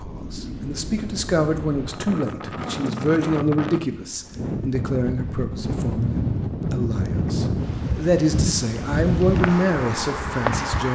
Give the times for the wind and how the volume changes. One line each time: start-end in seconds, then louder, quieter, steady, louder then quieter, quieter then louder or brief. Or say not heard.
0.0-10.9 louder.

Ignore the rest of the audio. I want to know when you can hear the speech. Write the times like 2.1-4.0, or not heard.
0.0-10.9.